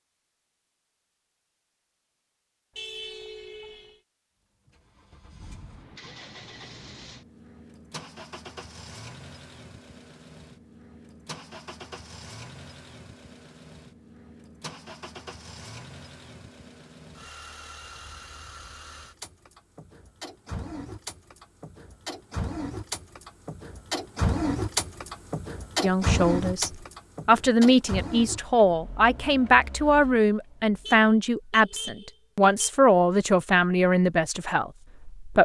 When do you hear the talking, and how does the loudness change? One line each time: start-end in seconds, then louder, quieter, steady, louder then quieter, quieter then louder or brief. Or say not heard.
25.8-35.3 steady.